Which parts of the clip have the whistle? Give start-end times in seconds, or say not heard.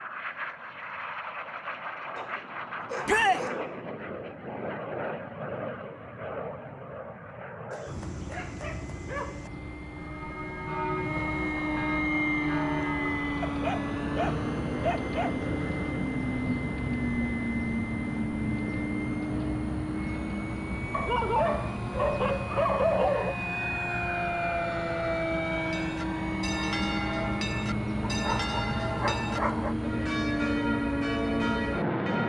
not heard.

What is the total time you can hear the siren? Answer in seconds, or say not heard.
not heard.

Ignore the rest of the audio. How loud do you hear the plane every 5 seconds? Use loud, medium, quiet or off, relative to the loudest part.
medium, medium, loud, loud, loud, loud, loud.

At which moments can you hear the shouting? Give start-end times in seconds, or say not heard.
3.0-3.5.